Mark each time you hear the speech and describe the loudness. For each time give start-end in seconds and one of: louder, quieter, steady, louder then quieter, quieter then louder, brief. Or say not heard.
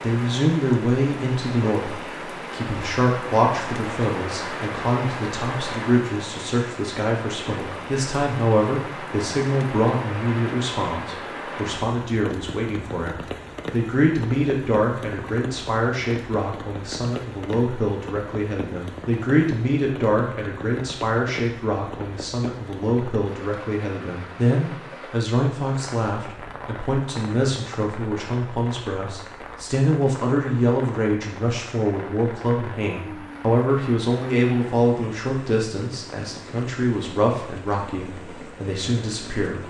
0.0-39.6 steady.